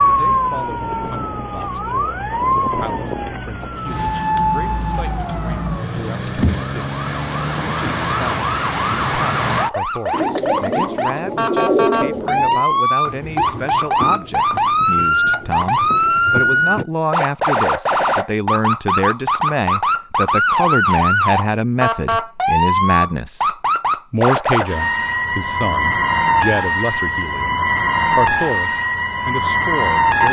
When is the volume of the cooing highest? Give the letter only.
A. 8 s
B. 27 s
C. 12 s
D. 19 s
C.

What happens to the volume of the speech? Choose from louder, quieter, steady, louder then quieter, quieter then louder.
louder.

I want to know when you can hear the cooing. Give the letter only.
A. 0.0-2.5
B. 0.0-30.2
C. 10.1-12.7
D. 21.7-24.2
C.